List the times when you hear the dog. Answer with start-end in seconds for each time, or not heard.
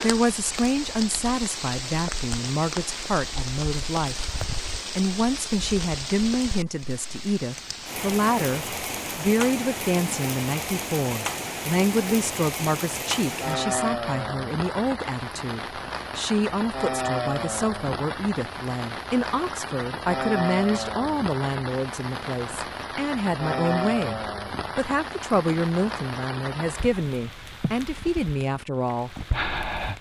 not heard.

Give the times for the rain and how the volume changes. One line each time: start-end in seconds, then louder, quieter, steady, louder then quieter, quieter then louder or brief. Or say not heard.
0.0-29.9 steady.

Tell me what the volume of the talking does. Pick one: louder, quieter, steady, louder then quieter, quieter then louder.
steady.